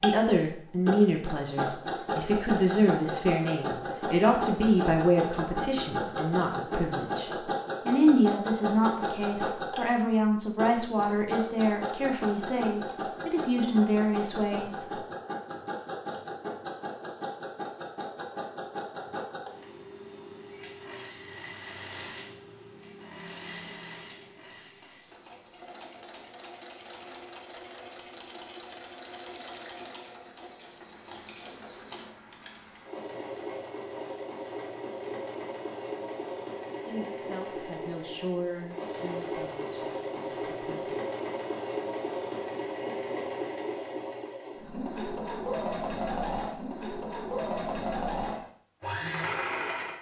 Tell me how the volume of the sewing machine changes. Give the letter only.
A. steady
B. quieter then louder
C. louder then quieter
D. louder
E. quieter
B.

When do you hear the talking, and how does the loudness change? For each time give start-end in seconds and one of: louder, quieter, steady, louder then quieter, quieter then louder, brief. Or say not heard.
0.0-15.0 steady
36.9-41.0 louder then quieter.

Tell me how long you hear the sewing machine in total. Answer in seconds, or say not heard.
50 s.